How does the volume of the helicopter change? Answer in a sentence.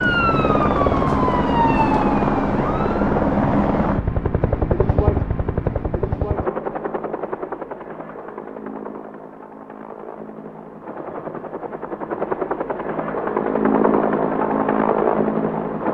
The loudness of the helicopter goes down, then up.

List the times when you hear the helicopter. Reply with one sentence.
You can hear the helicopter from 0.0 to 15.8 s.